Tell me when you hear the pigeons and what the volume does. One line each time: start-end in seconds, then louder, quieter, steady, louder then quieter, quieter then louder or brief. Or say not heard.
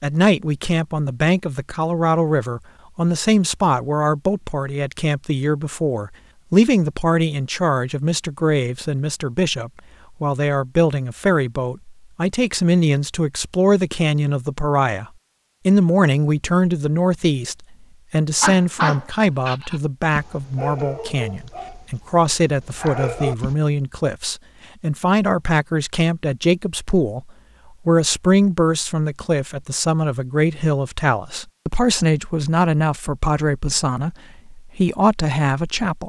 not heard.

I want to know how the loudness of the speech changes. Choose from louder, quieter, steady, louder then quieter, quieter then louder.
steady.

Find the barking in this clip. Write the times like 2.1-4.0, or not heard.
18.4-23.6.